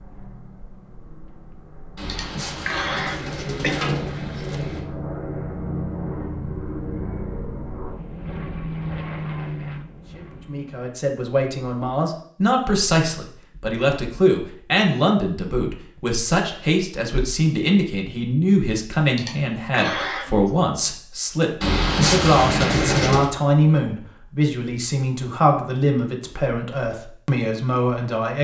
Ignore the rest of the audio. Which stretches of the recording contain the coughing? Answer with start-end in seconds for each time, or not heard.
2.0-3.8, 19.1-20.6.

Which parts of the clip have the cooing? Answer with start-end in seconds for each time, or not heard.
1.9-4.8, 21.6-23.3.